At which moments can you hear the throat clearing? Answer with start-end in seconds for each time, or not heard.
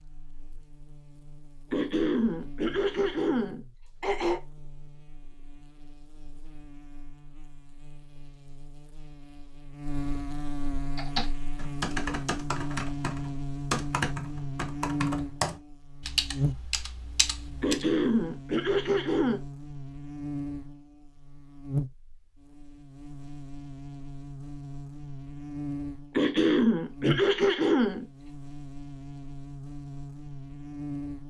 1.7-4.4, 17.6-19.4, 26.1-28.1.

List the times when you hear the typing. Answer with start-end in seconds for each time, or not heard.
10.9-17.9.